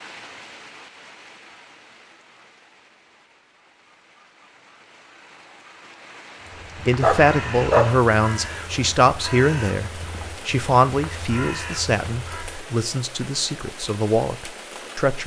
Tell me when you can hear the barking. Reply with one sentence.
The barking can be heard from 7.0 to 8.0 s.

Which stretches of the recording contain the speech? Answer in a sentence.
The speech can be heard from 6.8 to 15.2 s.